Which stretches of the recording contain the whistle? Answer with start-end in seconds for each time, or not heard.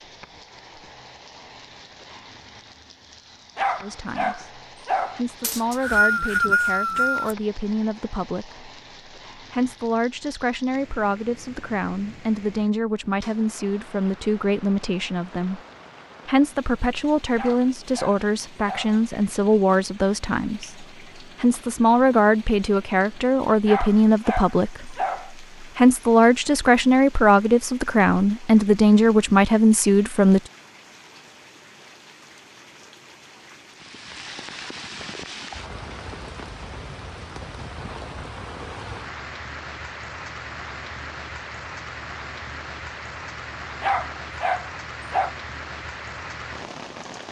5.4-7.3.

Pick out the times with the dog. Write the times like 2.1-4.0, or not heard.
3.5-5.2, 17.4-19.0, 23.6-25.3, 43.8-45.3.